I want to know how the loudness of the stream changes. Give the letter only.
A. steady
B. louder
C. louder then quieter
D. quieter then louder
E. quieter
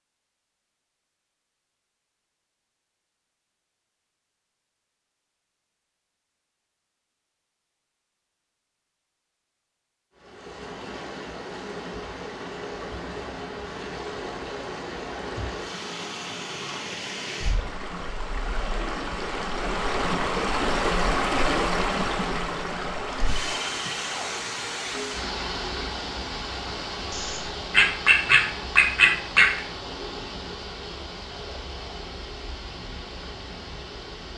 C.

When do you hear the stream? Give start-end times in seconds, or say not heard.
10.2-34.3.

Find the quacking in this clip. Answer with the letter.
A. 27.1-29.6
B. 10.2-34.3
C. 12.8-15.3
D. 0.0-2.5
A.